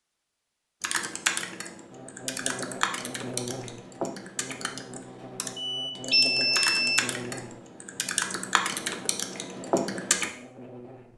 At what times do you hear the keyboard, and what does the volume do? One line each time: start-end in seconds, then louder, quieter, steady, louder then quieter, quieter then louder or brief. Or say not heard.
0.8-10.3 quieter then louder.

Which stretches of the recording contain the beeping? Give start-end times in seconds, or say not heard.
5.5-7.0.